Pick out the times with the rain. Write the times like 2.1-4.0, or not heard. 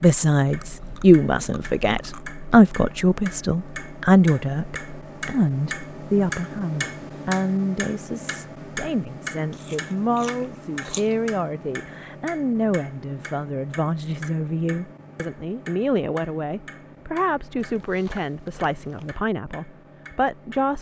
not heard.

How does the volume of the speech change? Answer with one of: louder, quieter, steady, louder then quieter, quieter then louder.
quieter.